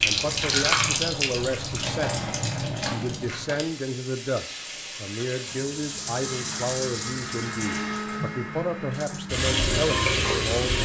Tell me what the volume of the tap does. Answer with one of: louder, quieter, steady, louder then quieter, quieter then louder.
quieter then louder.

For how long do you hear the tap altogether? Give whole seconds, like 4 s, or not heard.
11 s.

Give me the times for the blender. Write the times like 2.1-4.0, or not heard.
6.1-9.5.